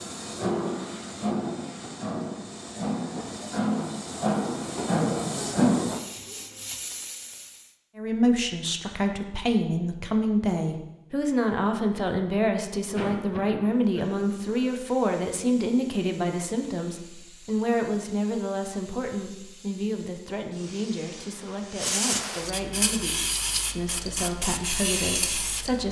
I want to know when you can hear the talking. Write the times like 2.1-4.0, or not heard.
8.0-25.8.